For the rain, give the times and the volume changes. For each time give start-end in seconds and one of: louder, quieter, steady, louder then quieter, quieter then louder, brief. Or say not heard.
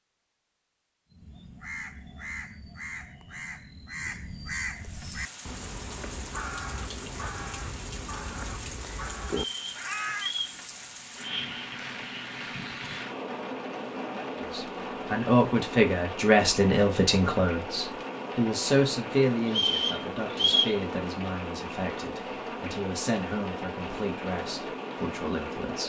4.7-25.8 louder.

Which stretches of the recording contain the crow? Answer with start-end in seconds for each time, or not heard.
1.1-10.3.